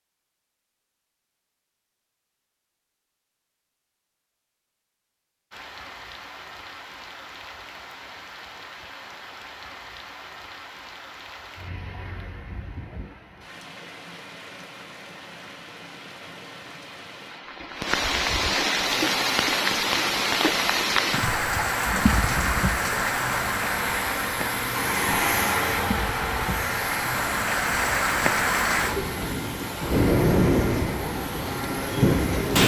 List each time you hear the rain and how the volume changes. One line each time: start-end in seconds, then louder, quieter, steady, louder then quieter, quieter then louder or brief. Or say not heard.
5.5-32.6 louder.